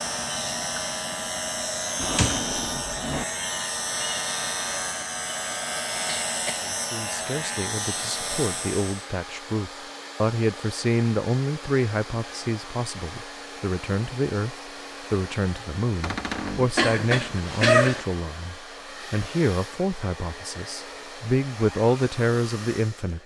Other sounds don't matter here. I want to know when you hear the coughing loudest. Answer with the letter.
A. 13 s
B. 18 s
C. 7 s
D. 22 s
B.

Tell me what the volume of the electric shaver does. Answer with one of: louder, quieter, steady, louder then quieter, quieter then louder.
steady.